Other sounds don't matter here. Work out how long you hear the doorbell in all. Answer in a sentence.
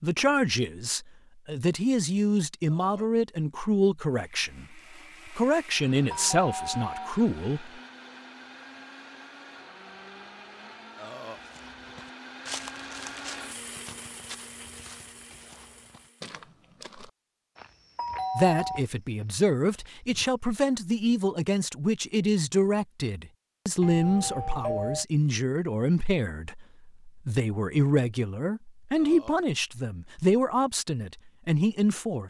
You can hear the doorbell for 3 seconds altogether.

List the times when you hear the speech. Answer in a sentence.
You can hear the speech from 0.0 to 7.8 s and from 18.4 to 32.2 s.